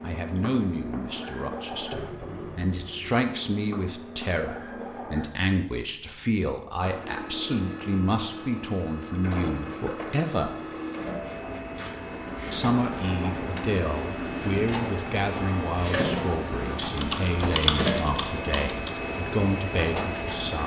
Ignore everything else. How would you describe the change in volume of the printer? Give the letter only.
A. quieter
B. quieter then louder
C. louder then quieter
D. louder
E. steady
D.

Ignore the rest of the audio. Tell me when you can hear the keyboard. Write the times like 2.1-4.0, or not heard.
16.8-18.9.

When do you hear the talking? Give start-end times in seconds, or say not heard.
0.0-10.6, 12.5-20.6.